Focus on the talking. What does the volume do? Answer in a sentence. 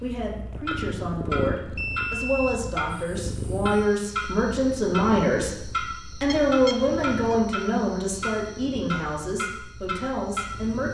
The volume of the talking goes up, then down.